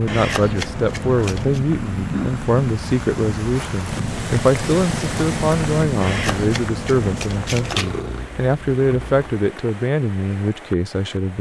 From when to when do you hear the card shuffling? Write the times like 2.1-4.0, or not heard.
0.1-1.6, 6.0-7.9.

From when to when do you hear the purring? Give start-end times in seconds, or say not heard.
0.0-9.3.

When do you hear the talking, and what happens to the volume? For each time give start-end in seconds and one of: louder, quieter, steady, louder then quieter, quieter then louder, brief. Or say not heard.
0.0-11.3 steady.